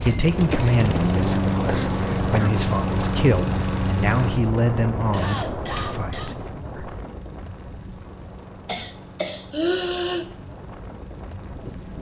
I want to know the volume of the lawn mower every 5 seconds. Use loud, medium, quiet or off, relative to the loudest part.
loud, quiet, quiet.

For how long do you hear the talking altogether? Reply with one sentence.
The talking can be heard for 7 seconds in total.